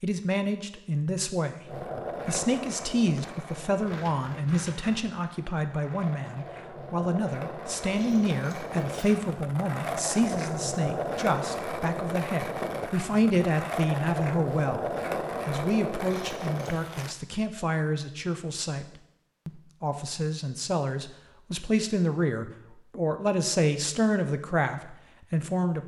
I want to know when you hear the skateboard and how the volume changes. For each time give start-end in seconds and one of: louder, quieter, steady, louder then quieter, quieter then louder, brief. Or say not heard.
1.6-17.1 louder.